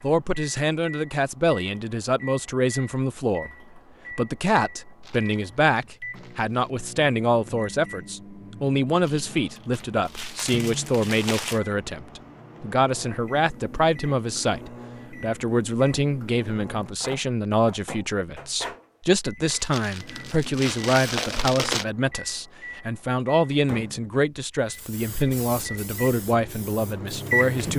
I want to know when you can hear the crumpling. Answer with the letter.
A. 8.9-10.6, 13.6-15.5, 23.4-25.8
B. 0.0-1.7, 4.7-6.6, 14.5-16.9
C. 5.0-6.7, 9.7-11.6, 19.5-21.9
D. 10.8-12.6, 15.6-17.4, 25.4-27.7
C.